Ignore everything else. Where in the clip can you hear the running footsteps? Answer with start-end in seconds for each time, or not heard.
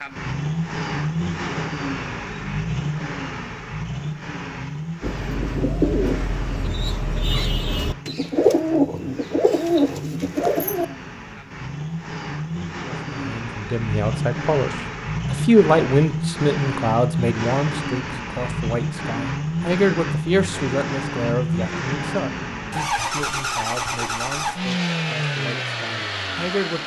not heard.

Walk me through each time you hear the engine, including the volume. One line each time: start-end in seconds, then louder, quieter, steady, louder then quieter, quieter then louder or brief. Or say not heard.
0.0-26.8 quieter then louder.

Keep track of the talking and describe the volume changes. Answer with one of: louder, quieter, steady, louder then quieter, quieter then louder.
quieter.